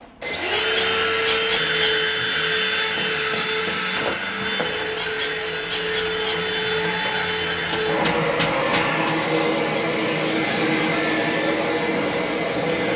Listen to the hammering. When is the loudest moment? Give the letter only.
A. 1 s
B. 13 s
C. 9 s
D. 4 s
C.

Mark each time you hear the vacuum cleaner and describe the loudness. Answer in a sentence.
You can hear the vacuum cleaner from 0.0 to 12.9 s, at a steady volume.